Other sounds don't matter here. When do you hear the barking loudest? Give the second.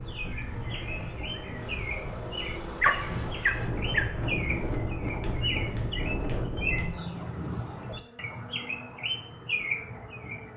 3 s.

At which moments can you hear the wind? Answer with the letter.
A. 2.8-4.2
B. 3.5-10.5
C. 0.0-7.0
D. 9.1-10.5
C.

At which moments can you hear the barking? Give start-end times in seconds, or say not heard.
2.8-4.2.